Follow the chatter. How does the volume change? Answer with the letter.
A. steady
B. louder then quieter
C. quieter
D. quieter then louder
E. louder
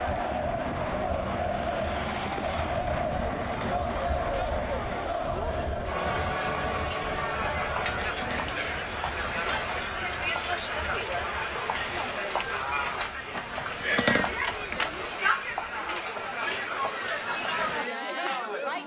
A.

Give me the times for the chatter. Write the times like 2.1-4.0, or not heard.
0.0-18.8.